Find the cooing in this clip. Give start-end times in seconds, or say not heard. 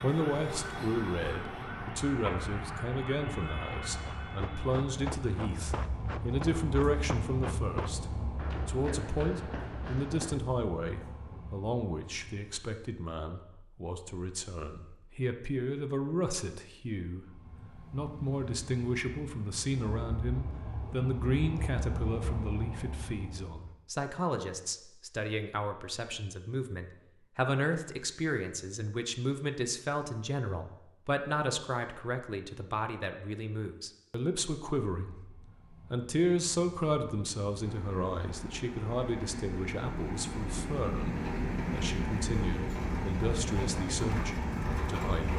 not heard.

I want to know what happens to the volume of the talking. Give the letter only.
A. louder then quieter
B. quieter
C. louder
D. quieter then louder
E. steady
E.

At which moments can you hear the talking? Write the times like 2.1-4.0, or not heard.
0.0-45.3.